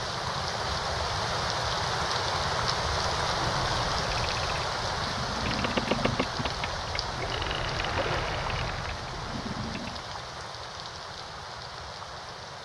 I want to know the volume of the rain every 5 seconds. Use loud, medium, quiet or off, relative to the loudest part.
loud, medium, medium.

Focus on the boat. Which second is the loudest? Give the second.
6 s.